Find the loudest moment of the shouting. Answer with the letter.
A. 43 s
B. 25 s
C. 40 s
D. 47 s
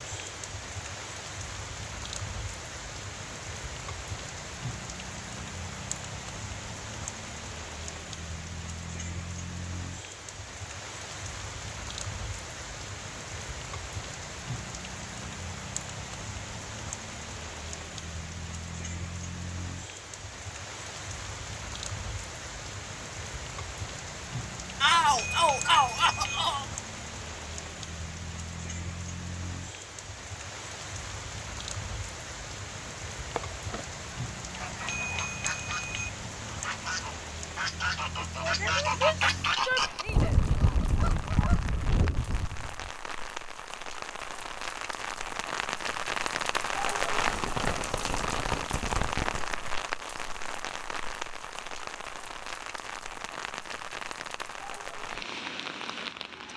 B.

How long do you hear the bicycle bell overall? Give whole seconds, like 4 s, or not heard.
3 s.